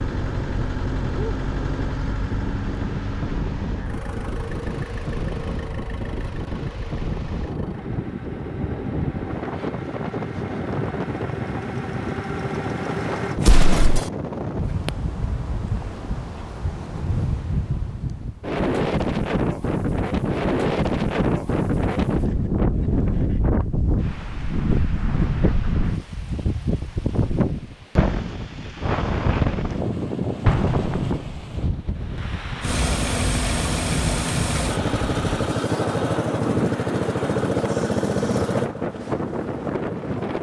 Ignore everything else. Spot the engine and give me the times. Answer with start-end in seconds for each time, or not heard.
0.0-13.4, 32.6-40.3.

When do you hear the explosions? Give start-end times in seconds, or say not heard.
13.3-14.1, 30.4-31.4.